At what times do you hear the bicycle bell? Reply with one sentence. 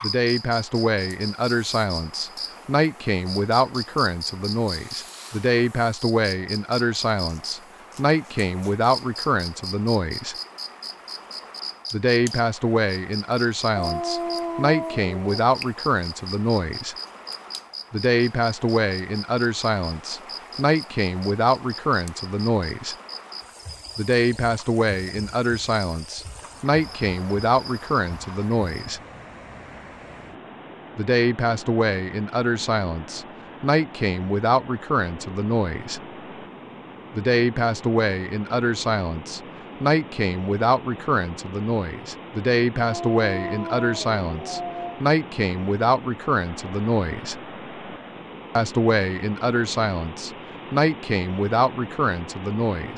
You can't hear the bicycle bell here.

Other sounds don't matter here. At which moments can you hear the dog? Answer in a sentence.
You can hear the dog from 13.8 to 15.4 s and from 42.8 to 45.0 s.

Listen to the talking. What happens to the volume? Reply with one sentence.
The loudness of the talking stays about the same.